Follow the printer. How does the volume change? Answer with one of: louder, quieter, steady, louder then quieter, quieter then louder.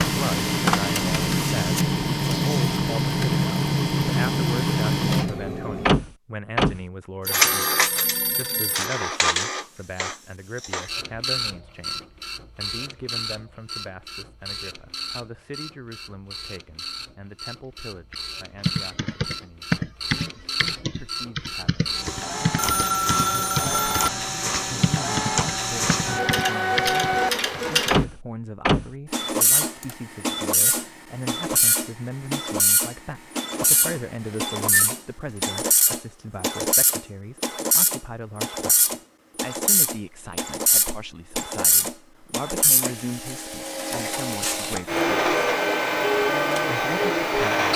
quieter then louder.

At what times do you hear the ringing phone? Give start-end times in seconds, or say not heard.
7.2-8.9, 22.6-24.1, 33.4-34.9.